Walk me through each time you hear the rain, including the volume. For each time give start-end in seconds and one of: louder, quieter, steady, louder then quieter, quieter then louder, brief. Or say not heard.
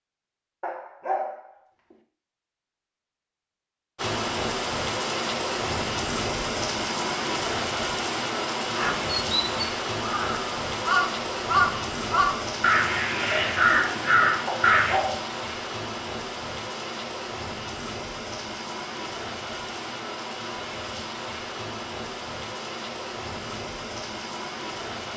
4.0-25.1 quieter.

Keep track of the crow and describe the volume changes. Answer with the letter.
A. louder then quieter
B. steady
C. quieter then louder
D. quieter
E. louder
E.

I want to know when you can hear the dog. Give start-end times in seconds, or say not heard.
0.6-1.9, 14.4-15.3.